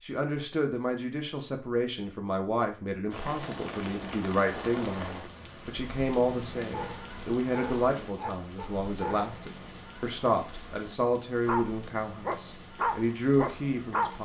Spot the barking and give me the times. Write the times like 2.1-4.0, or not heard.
6.7-9.3, 11.4-14.2.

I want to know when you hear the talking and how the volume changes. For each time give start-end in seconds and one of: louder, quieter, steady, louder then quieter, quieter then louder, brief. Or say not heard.
0.0-14.2 steady.